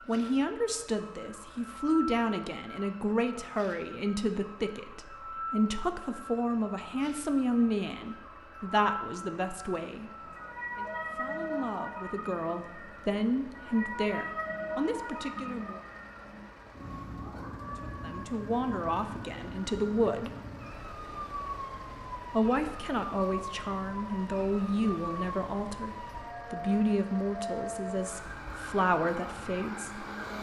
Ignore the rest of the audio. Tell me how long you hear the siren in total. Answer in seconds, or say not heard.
30 s.